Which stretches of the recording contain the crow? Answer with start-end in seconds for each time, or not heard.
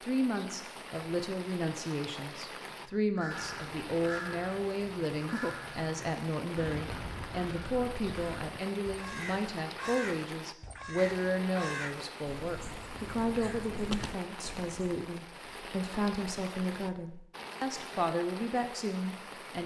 2.9-15.0.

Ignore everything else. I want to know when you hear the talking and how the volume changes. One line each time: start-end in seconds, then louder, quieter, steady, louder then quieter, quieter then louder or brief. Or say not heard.
0.0-19.6 steady.